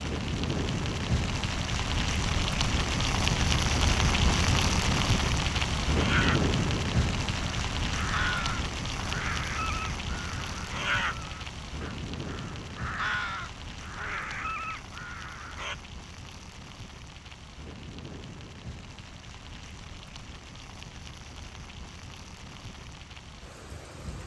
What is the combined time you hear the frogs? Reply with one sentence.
The frogs can't be heard in this clip.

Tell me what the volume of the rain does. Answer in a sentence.
The volume of the rain goes down.